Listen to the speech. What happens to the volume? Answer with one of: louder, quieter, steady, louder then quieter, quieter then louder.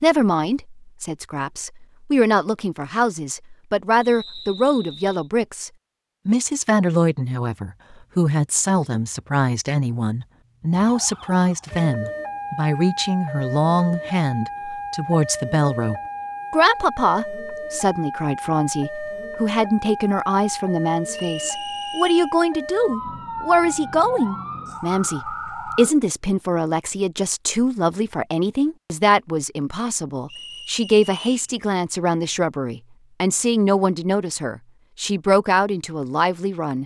steady.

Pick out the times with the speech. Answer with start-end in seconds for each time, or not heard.
0.0-36.8.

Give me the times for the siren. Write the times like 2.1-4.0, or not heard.
10.7-25.9.